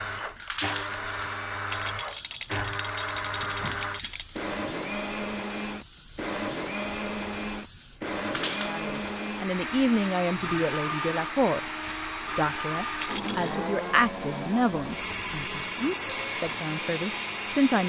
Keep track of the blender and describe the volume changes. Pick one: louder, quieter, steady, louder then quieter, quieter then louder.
steady.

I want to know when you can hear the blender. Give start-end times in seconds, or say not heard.
0.0-17.8.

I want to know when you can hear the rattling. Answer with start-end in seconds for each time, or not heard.
1.6-4.3, 12.9-13.6.